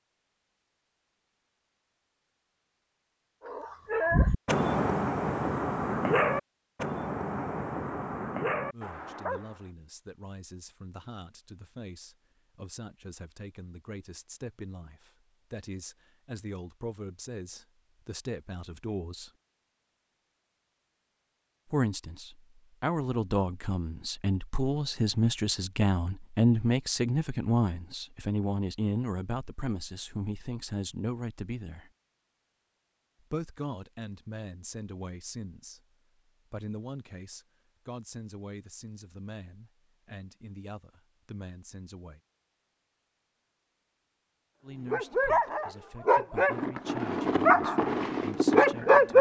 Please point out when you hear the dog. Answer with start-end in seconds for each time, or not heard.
3.5-9.6, 44.9-49.1.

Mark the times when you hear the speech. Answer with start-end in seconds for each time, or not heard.
8.7-19.3, 21.6-31.9, 33.3-35.8, 36.5-42.2, 44.6-49.1.